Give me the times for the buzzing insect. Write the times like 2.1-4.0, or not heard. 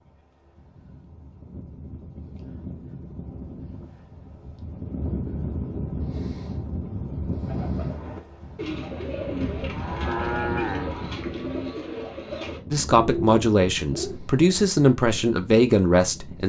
not heard.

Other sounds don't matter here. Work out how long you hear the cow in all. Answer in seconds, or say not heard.
2 s.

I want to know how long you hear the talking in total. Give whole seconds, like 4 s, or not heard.
4 s.